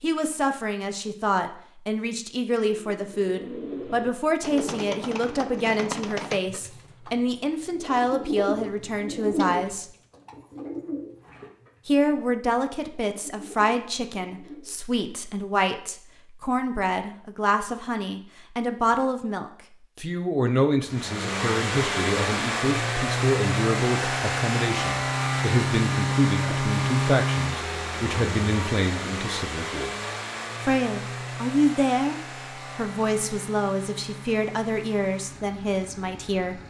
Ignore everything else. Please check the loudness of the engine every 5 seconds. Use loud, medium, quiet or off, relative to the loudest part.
off, off, off, off, loud, loud, medium, quiet.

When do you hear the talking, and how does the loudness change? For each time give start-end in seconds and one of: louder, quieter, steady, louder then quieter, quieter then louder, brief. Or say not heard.
0.0-9.8 steady
11.8-29.9 steady
30.6-36.6 quieter.